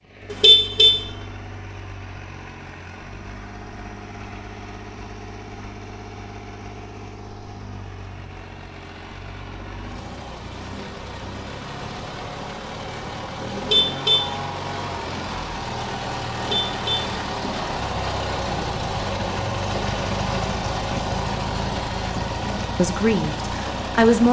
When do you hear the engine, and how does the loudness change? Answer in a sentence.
The engine can be heard from 0.0 to 24.2 s, getting louder.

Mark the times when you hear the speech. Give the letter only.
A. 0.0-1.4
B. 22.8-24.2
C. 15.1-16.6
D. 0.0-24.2
B.